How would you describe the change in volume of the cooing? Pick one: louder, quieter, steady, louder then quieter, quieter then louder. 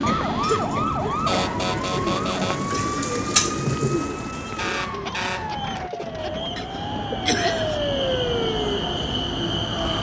louder then quieter.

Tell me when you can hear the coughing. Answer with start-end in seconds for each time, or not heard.
0.1-1.2, 6.5-7.8.